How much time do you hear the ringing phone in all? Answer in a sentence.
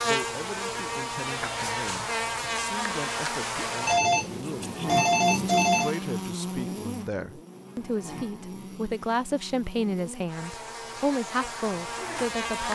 You can hear the ringing phone for 2 seconds altogether.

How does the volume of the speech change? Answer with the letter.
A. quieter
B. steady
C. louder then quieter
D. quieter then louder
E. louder
E.